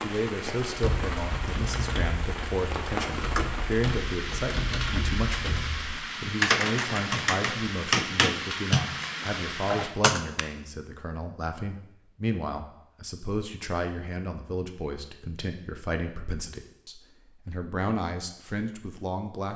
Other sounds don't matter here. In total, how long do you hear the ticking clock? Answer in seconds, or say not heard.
not heard.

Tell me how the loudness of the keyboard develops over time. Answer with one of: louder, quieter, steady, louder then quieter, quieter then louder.
louder.